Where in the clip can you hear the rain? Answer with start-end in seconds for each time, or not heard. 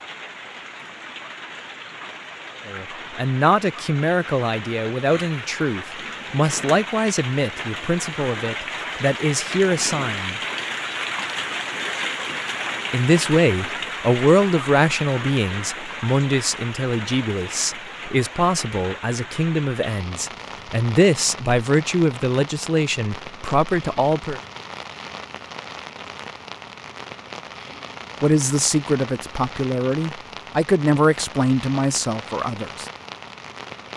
0.0-33.9.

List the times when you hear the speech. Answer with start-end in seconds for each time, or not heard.
2.6-10.4, 12.9-24.4, 28.2-32.9.